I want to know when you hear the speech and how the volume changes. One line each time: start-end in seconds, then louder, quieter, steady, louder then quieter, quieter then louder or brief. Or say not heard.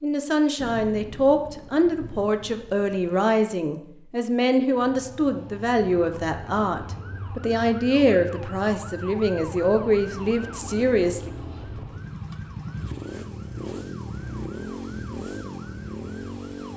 0.0-11.3 steady.